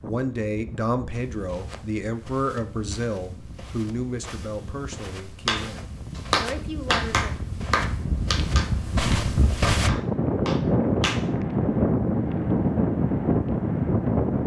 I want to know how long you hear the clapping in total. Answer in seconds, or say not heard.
6 s.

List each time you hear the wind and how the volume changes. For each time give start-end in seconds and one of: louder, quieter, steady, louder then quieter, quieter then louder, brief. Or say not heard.
0.0-14.4 louder.